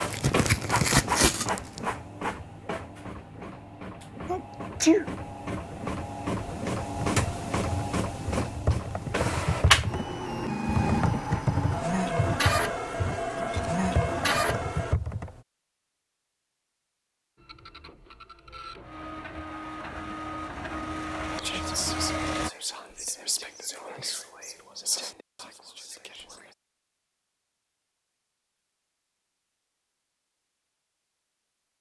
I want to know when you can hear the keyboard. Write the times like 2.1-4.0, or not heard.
7.0-15.4.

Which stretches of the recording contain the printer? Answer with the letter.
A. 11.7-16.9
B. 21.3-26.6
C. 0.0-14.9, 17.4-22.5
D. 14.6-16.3
C.